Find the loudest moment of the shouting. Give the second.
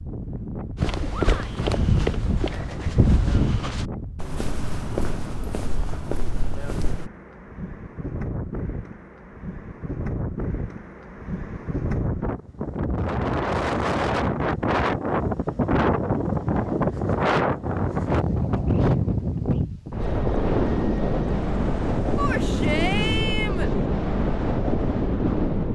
23 s.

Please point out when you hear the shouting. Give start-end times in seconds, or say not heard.
1.1-1.6, 22.1-23.7.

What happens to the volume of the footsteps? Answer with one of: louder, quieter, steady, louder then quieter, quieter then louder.
quieter.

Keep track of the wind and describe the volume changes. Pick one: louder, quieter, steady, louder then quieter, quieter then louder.
louder.